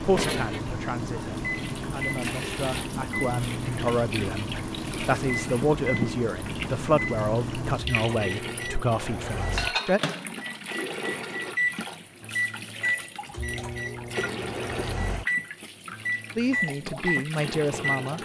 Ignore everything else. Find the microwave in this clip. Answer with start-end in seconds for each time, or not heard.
0.0-18.2.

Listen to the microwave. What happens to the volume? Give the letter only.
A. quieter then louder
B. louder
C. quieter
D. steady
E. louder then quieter
D.